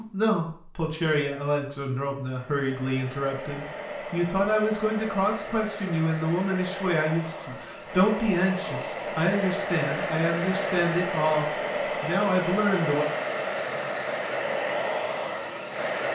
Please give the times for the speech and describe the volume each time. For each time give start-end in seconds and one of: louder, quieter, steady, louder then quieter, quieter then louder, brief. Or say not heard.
0.0-13.1 steady.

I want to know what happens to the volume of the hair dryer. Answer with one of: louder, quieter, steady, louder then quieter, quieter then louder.
louder.